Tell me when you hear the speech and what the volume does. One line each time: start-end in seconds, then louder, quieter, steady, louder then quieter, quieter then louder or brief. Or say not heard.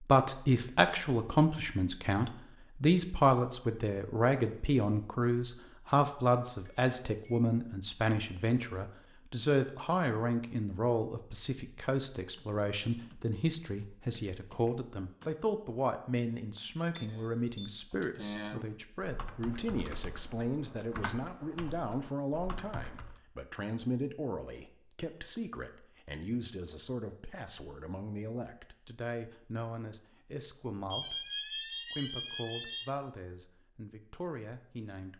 0.0-35.1 quieter.